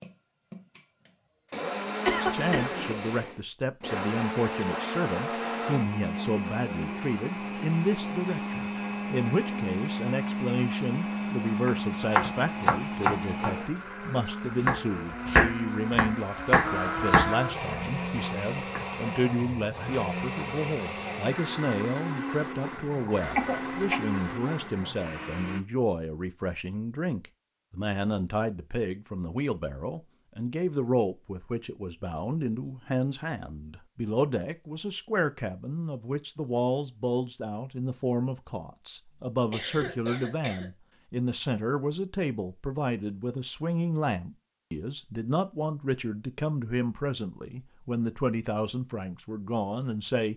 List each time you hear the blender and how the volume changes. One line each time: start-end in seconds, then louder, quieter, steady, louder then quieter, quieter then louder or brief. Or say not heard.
0.0-25.6 steady.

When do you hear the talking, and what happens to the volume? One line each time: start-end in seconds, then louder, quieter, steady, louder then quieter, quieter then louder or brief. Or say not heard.
2.1-50.3 steady.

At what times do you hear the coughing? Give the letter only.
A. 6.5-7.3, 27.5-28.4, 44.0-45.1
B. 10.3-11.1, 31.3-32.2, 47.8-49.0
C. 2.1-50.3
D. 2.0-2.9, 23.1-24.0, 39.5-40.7
D.